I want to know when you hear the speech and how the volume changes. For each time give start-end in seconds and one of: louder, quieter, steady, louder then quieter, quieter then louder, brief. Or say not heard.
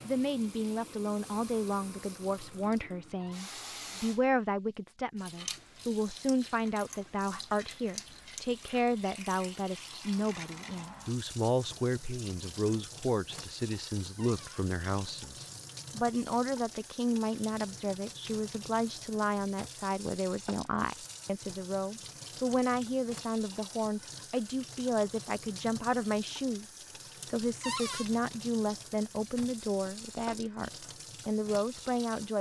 0.0-32.3 steady.